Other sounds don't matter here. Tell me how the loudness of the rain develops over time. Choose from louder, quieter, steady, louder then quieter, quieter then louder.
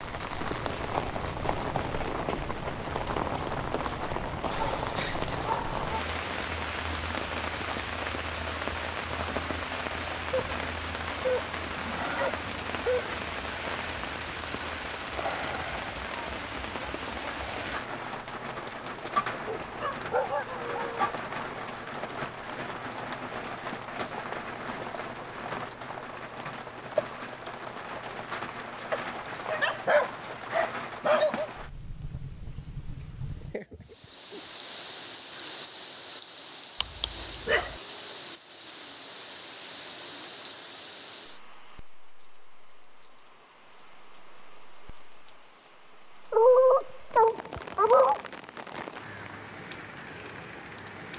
quieter.